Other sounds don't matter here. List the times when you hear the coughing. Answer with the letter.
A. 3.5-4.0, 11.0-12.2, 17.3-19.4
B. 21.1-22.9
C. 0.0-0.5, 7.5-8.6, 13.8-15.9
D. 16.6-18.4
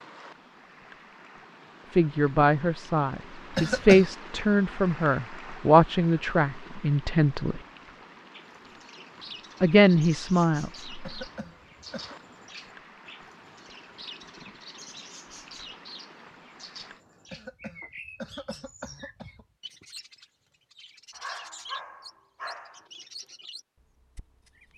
A.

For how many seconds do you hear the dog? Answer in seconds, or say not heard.
2 s.